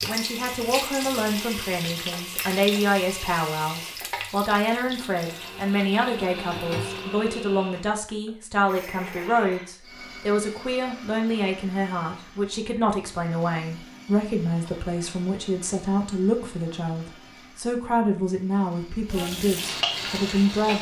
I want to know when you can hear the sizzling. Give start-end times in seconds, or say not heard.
0.0-7.1, 19.1-20.7.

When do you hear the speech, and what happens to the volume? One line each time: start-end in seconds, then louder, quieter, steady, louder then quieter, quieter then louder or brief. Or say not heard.
0.0-20.7 steady.